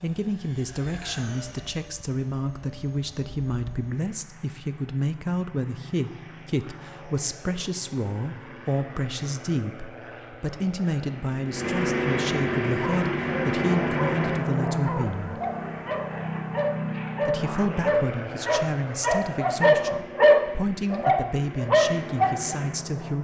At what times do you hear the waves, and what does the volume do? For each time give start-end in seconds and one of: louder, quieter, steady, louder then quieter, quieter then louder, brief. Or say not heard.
not heard.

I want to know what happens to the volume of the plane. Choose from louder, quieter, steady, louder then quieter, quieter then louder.
louder then quieter.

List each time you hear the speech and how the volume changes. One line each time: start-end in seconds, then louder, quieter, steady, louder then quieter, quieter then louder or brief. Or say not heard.
0.0-15.4 steady
17.2-23.1 steady.